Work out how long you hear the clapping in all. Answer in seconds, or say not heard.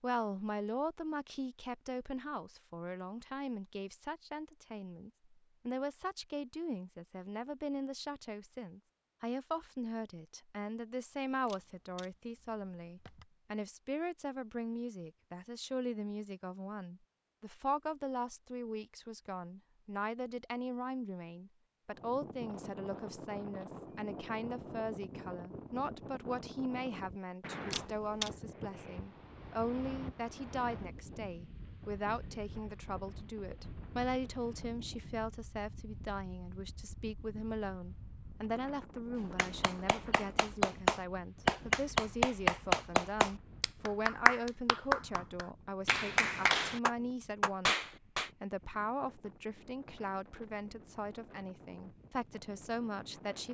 9 s.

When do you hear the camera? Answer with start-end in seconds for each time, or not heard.
11.4-13.2, 27.7-28.3.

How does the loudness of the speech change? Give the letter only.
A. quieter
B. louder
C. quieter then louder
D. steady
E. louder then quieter
D.